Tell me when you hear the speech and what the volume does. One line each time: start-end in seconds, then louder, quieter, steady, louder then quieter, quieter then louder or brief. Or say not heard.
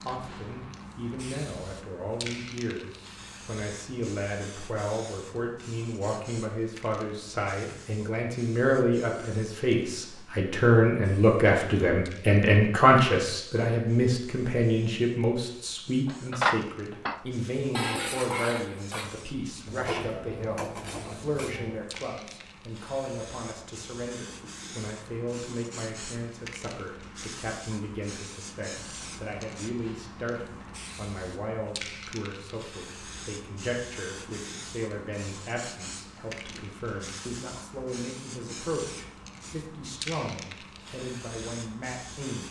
0.0-42.4 louder then quieter.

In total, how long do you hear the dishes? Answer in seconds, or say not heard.
6 s.